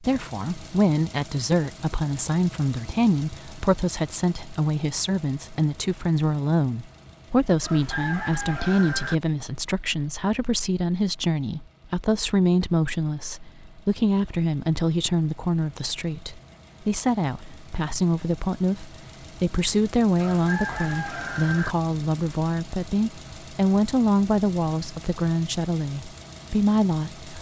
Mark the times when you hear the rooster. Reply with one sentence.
The rooster can be heard from 7.6 to 9.2 s and from 20.1 to 21.8 s.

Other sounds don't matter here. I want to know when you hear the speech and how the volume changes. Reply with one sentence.
You can hear the speech from 0.1 to 27.3 s, at a steady volume.